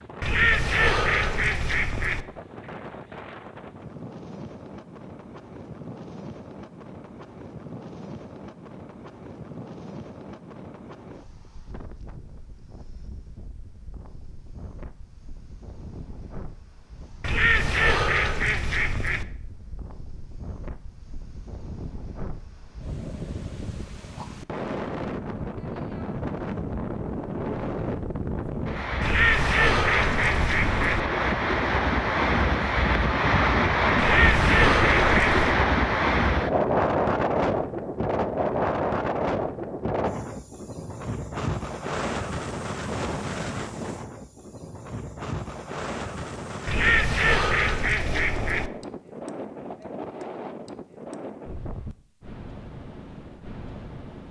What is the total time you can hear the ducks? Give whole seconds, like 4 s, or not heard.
10 s.